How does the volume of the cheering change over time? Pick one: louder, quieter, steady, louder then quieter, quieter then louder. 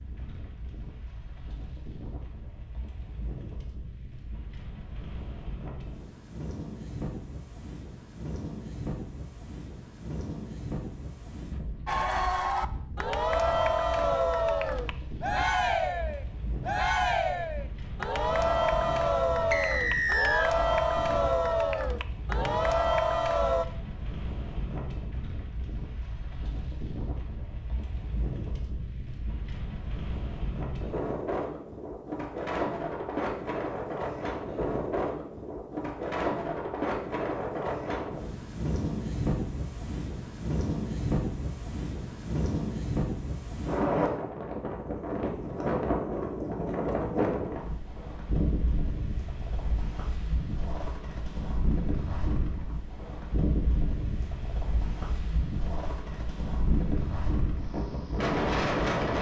steady.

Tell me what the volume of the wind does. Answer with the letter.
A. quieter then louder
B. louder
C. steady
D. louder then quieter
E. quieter
B.